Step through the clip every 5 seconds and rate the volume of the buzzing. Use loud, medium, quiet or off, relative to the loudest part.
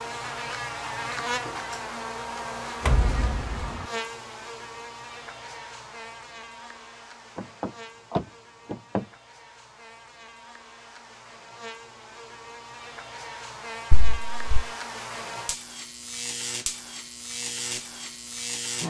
loud, medium, medium, loud.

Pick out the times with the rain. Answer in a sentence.
You can't hear the rain here.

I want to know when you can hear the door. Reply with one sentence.
You can hear the door from 2.8 to 3.9 s, from 7.3 to 9.1 s and from 13.9 to 14.7 s.